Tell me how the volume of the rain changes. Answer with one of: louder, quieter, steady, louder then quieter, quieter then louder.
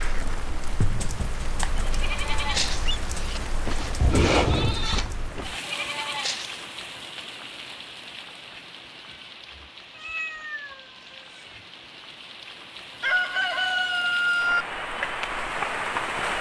quieter then louder.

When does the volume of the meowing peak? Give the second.
10 s.